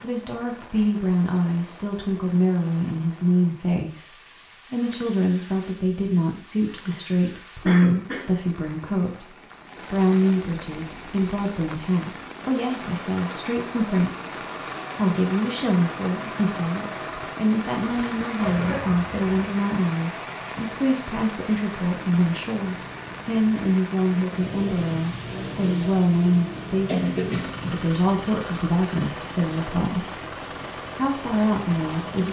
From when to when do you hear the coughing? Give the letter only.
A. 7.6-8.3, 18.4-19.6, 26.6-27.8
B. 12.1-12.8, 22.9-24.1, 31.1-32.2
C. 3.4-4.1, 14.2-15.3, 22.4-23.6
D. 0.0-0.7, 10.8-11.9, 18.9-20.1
A.